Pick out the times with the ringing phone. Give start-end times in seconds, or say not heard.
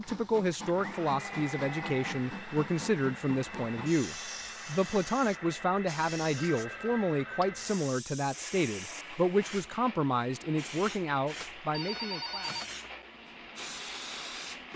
1.1-2.1, 6.3-7.5, 11.4-12.9.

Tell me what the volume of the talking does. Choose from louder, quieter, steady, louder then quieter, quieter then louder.
steady.